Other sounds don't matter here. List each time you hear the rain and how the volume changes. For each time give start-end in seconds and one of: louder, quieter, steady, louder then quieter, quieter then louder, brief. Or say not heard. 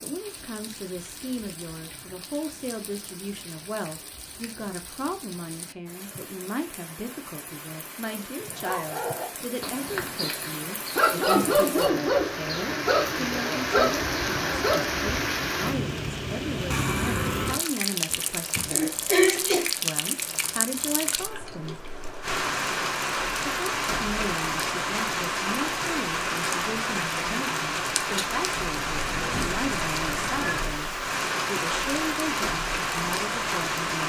0.0-34.0 louder.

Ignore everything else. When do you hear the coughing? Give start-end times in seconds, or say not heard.
18.1-19.7.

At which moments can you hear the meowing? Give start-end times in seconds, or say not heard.
28.7-30.8.